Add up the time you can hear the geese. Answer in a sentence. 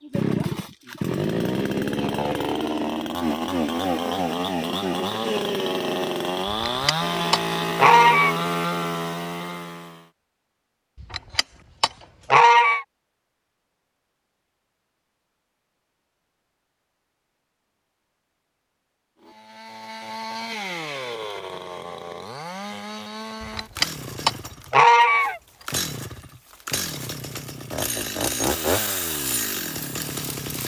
You can hear the geese for 6 seconds altogether.